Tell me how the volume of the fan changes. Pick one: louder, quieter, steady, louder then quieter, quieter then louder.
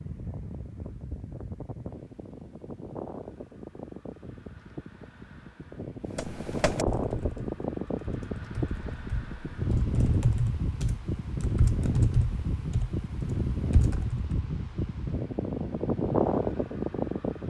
louder.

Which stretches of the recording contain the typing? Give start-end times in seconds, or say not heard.
6.2-14.3.